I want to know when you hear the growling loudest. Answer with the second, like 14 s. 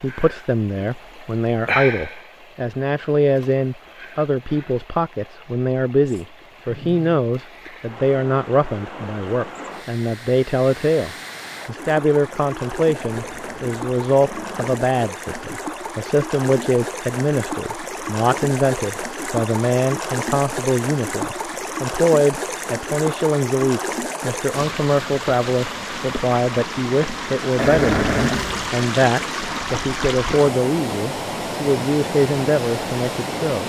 28 s.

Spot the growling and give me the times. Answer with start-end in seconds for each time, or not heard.
6.0-7.2, 13.0-14.8, 27.6-28.7.